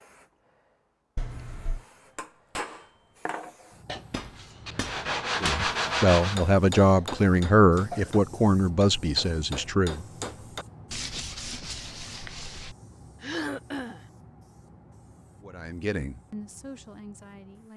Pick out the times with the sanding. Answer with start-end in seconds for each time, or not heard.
3.9-6.5, 10.9-12.8.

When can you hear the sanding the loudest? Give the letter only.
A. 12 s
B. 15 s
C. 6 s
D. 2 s
C.